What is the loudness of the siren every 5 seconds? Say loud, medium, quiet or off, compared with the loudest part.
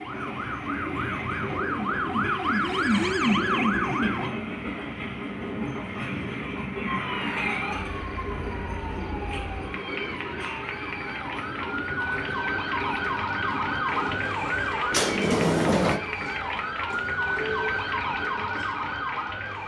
loud, medium, loud, loud.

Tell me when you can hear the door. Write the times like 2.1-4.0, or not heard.
14.9-16.0.